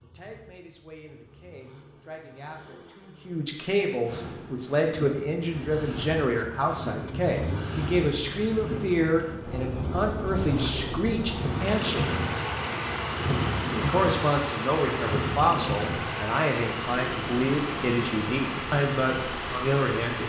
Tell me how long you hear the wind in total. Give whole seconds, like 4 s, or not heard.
16 s.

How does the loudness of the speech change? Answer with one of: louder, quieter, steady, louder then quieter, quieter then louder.
louder.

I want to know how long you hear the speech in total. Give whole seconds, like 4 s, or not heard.
19 s.